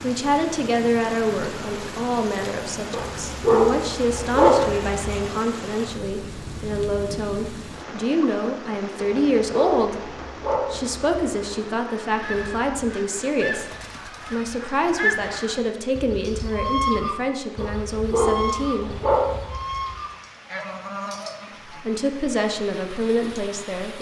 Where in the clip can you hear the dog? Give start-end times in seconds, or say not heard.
2.9-5.0, 9.0-11.3, 17.6-19.6.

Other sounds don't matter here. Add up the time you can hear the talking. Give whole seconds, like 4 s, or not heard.
20 s.